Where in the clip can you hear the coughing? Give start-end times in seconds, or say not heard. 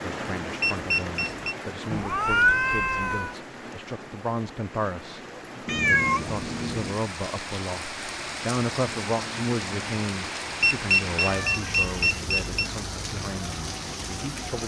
not heard.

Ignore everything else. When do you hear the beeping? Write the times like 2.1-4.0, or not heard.
0.6-1.6, 10.6-12.7.